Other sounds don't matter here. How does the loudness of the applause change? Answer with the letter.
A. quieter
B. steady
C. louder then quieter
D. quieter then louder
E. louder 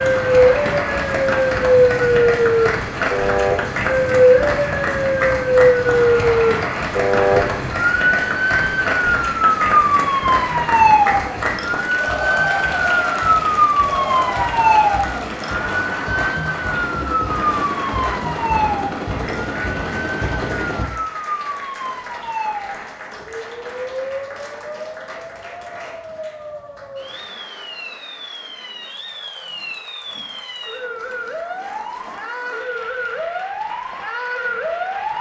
A.